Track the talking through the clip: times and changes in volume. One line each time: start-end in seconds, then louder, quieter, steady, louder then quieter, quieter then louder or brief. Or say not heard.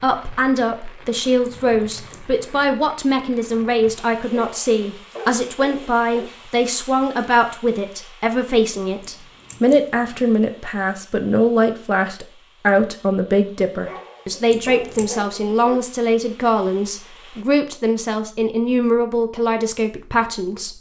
0.0-20.7 steady.